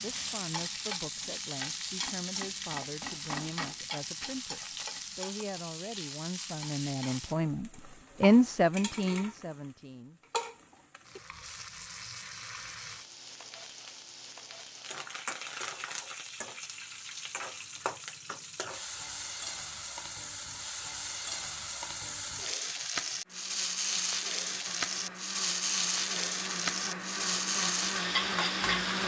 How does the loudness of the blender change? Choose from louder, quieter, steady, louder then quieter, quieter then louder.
louder.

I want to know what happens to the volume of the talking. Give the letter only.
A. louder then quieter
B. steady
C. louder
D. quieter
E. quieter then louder
C.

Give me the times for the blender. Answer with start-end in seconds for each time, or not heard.
23.2-29.0.